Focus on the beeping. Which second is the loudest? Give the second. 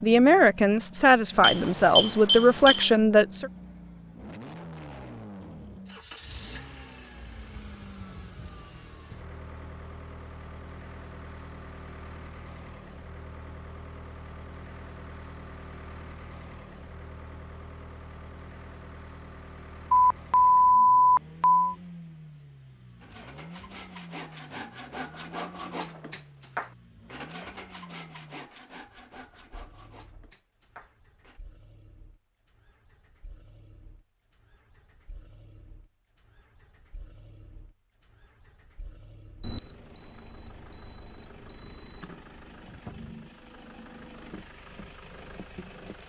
21 s.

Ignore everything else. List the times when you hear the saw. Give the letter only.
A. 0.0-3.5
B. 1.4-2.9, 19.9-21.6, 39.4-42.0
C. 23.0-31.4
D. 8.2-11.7
C.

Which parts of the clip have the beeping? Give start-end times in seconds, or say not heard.
1.4-2.9, 19.9-21.6, 39.4-42.0.